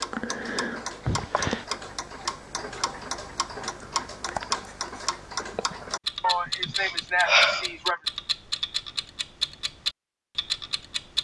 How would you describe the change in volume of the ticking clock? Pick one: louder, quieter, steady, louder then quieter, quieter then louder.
steady.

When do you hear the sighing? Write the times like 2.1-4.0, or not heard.
1.1-1.6, 6.2-8.0.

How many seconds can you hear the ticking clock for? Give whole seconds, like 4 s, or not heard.
11 s.